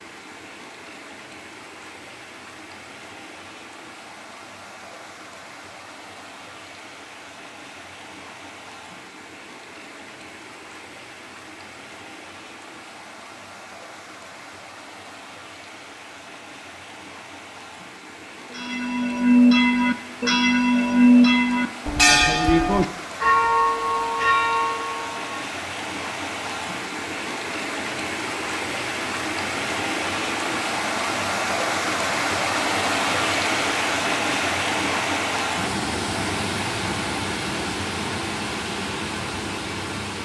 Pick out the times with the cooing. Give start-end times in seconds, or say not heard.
not heard.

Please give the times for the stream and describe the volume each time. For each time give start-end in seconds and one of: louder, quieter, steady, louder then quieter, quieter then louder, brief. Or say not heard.
0.0-40.2 louder.